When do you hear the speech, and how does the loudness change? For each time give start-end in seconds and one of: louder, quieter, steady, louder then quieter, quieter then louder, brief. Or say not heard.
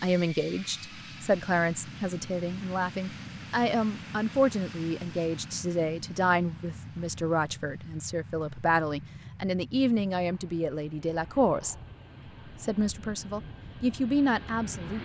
0.0-11.8 steady
12.6-14.9 brief.